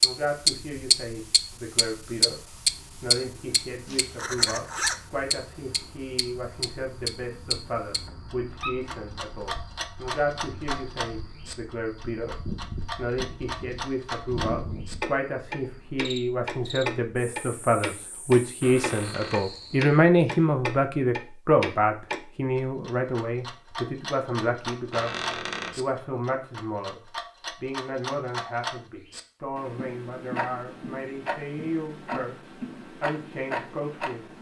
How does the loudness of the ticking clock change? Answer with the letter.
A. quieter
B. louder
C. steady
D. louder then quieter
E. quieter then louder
A.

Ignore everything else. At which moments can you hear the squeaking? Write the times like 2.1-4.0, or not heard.
7.8-8.8, 18.6-19.4, 24.9-25.8.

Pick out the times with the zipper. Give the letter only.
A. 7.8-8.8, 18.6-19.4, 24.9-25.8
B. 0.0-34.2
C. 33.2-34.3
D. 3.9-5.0
D.